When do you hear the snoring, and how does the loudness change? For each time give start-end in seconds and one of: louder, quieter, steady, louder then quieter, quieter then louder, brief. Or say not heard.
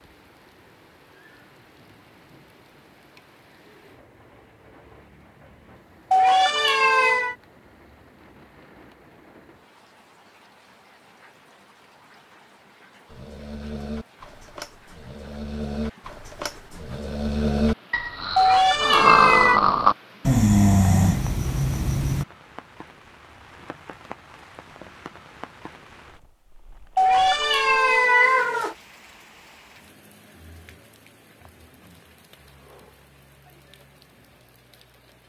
13.1-22.2 louder.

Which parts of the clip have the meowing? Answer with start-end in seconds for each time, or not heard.
6.1-7.3, 18.4-19.6, 26.9-28.8.